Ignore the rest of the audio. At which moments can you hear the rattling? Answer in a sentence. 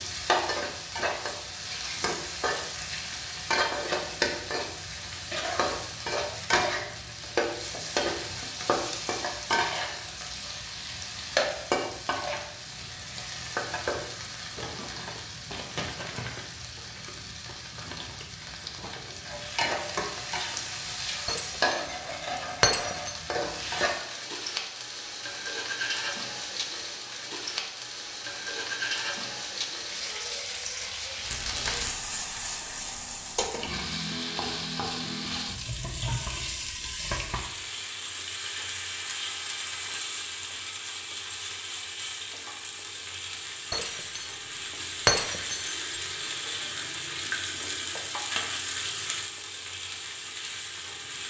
You can hear the rattling from 31.2 to 31.9 s.